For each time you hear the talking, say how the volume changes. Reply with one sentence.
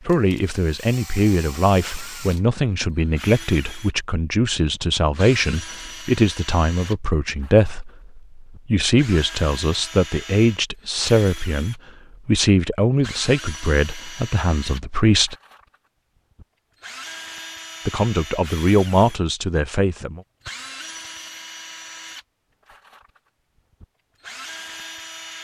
You can hear the talking from 0.1 to 15.3 s, at a steady volume; and briefly from 17.9 to 20.2 s.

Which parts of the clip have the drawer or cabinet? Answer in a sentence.
The drawer or cabinet can't be heard in this clip.